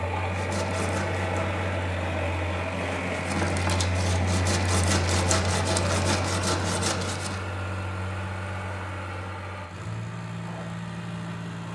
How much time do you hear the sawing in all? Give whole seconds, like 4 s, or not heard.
7 s.